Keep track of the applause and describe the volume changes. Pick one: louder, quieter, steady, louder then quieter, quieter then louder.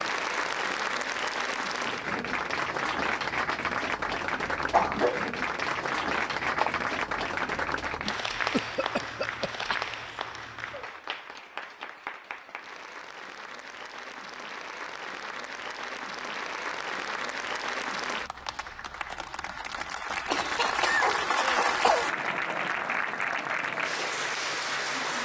quieter then louder.